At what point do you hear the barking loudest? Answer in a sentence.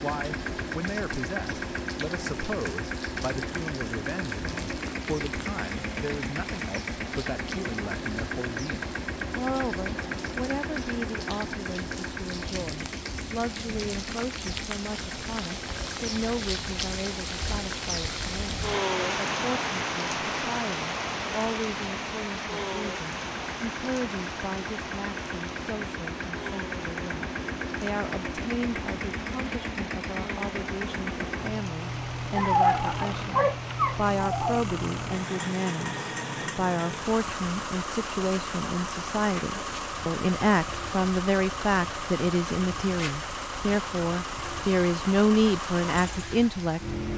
The volume of the barking peaks at 33 seconds.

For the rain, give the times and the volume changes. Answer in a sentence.
You can hear the rain from 0.0 to 47.1 s, getting louder then quieter.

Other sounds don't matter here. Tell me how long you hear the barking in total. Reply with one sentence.
You can hear the barking for 2 seconds altogether.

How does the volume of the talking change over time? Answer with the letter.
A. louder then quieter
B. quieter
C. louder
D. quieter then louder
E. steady
C.